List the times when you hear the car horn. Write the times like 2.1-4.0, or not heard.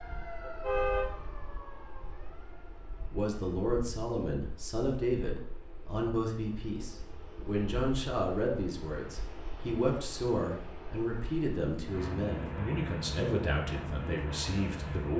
0.4-1.1.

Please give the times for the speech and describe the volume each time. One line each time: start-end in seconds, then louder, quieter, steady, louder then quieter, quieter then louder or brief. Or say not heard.
3.1-15.1 steady.